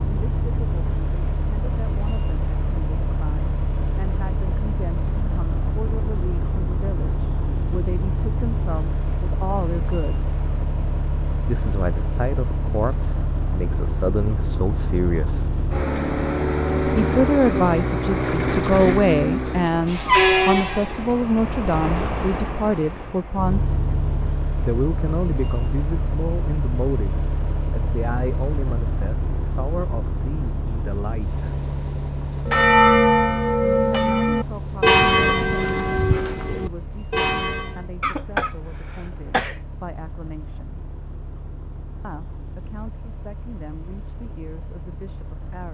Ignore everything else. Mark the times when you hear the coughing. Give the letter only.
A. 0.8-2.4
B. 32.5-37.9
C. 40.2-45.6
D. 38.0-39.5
D.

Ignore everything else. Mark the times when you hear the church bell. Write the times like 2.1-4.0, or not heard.
32.5-37.9.